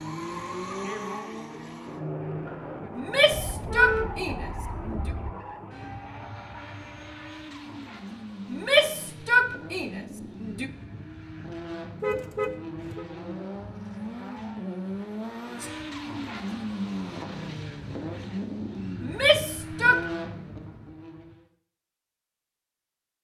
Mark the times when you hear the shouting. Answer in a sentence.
The shouting can be heard from 3.0 to 5.1 s, from 8.5 to 10.7 s and from 19.0 to 20.1 s.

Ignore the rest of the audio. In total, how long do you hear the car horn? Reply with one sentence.
You can hear the car horn for 3 seconds altogether.